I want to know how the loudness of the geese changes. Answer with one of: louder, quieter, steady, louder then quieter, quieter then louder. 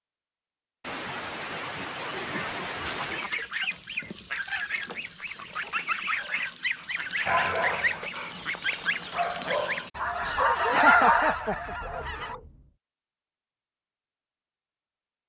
louder.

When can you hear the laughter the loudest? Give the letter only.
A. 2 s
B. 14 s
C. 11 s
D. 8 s
C.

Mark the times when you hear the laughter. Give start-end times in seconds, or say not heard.
0.8-3.3, 7.2-8.1, 10.6-11.8.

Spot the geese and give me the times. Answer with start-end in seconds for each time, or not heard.
2.9-12.3.